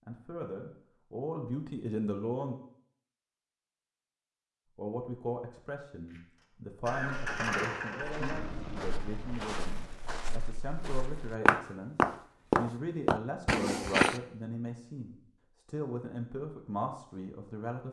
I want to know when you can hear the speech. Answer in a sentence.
The speech can be heard from 0.1 to 2.5 s and from 4.8 to 17.8 s.